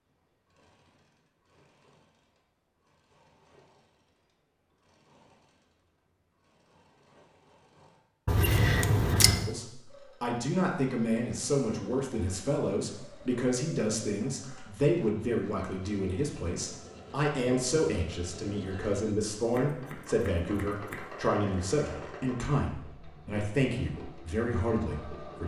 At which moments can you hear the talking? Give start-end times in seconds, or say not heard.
9.4-25.4.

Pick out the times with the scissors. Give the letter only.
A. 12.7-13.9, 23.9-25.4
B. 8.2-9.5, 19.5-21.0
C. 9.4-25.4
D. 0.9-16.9
B.